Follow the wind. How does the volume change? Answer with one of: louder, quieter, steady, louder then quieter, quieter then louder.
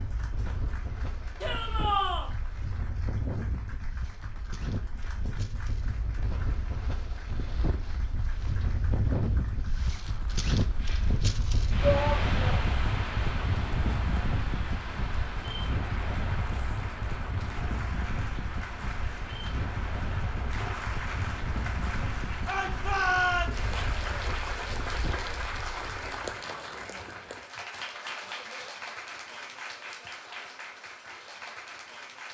louder then quieter.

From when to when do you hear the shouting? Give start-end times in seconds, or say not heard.
1.4-2.3, 11.8-12.4, 22.4-23.6.